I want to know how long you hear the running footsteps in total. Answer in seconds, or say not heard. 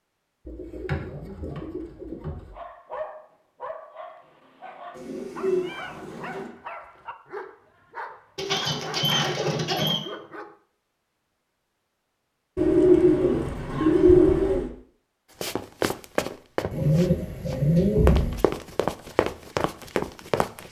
5 s.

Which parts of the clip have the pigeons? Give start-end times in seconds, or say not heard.
0.5-2.5, 4.9-6.5, 8.3-10.0, 12.6-14.7, 16.7-18.4.